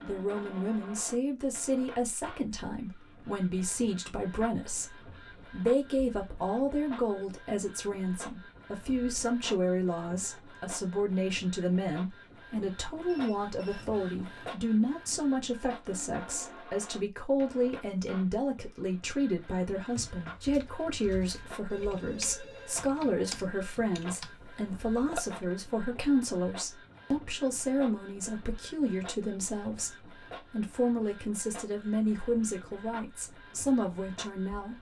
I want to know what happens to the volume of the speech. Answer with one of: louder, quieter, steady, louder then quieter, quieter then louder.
steady.